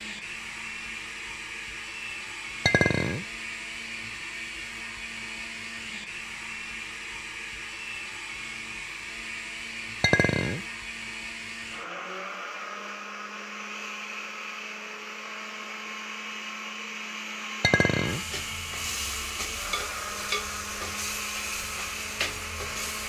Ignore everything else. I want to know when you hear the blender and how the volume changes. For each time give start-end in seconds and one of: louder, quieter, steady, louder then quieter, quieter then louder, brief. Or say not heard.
0.0-23.0 steady.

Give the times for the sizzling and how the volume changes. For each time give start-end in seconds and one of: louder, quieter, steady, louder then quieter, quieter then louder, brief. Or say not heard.
18.1-23.0 steady.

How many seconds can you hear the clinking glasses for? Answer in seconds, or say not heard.
2 s.